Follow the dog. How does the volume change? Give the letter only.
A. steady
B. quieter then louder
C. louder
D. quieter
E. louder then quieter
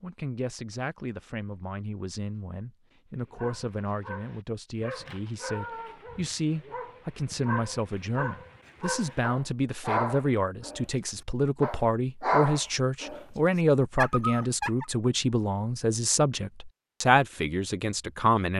C.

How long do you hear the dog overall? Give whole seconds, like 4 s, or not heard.
11 s.